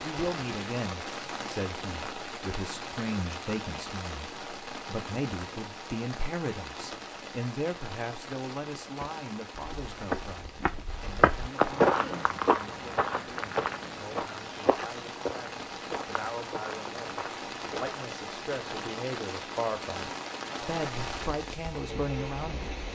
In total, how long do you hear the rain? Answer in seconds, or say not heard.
23 s.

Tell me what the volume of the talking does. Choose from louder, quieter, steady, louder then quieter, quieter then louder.
quieter then louder.